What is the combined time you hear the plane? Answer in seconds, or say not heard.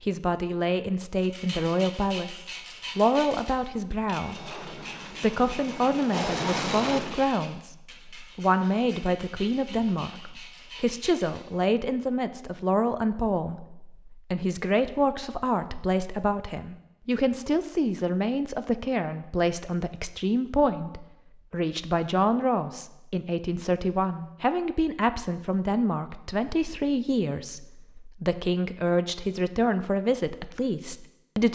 3 s.